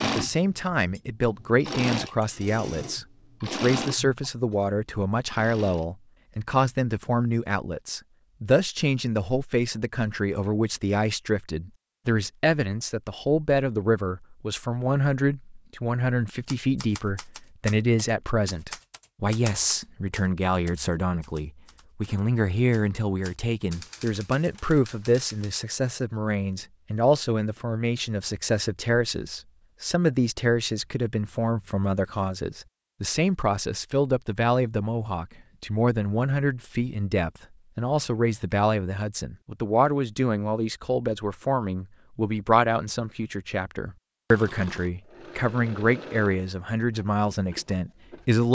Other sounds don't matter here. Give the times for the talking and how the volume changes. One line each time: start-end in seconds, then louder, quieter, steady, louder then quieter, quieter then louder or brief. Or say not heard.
0.0-48.4 steady.